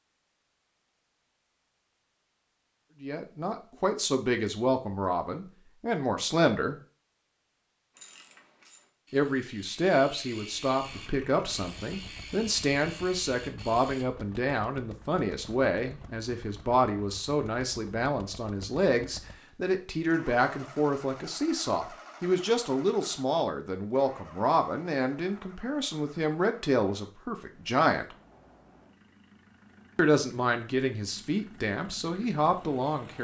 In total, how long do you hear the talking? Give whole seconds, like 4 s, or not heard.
26 s.